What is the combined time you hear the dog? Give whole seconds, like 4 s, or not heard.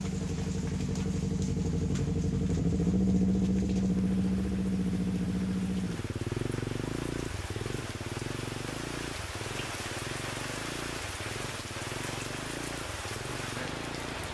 not heard.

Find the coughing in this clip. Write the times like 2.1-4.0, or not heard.
not heard.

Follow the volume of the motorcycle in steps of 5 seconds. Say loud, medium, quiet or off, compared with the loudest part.
loud, medium, quiet.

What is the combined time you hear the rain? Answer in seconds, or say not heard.
14 s.